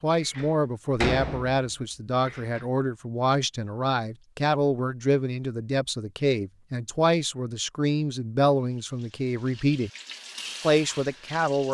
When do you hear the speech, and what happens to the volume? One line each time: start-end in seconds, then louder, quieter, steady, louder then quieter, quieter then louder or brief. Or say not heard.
0.0-9.9 steady
10.6-11.6 brief.